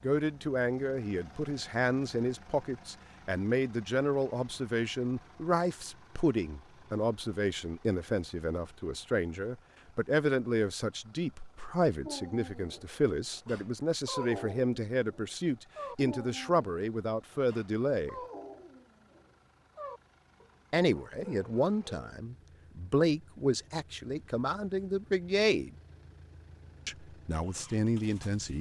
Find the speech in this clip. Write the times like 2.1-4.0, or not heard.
0.0-18.1, 20.7-25.7, 26.9-28.5.